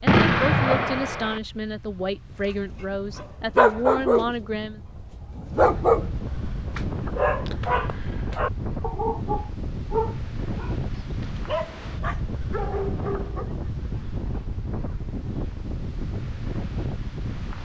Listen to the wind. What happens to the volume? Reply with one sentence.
The loudness of the wind goes up.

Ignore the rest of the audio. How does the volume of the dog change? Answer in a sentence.
The loudness of the dog goes down.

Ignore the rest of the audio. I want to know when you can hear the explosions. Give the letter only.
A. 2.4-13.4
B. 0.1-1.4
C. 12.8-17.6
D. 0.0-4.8
B.